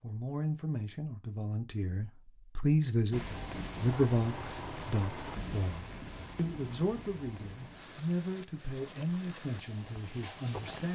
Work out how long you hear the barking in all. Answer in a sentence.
You can't hear the barking here.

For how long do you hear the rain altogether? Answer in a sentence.
You can hear the rain for 8 seconds altogether.